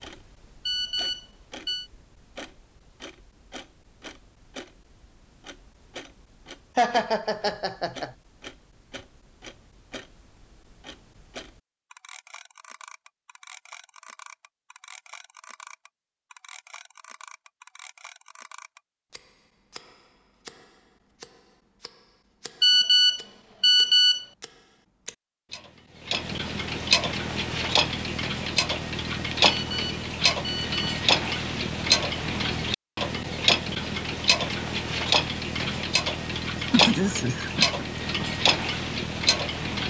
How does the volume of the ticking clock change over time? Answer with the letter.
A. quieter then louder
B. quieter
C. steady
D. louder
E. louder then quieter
D.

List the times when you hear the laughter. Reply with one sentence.
You can hear the laughter from 6.8 to 8.1 s and from 36.6 to 37.9 s.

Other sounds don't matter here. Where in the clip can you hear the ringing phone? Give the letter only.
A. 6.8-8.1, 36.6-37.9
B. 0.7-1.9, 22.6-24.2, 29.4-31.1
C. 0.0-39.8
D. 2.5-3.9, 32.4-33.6
B.